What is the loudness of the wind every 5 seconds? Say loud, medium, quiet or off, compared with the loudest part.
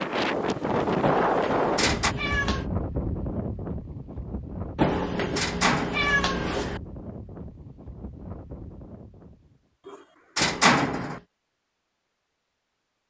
loud, quiet, off.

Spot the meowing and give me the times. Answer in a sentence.
The meowing can be heard from 1.0 to 2.7 s, from 4.8 to 6.8 s and from 10.3 to 11.2 s.